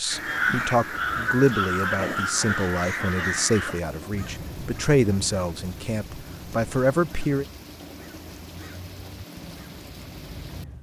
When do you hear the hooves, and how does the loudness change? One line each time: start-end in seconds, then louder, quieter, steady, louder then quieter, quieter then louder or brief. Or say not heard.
not heard.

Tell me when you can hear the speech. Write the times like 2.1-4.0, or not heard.
0.0-7.5.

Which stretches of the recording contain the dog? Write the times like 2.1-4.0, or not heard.
not heard.